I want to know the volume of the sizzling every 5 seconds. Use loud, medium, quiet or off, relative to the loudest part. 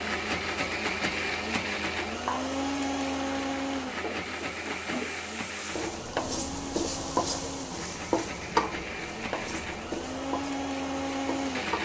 medium, loud, medium.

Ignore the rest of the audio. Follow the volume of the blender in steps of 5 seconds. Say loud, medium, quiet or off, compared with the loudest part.
loud, medium, loud.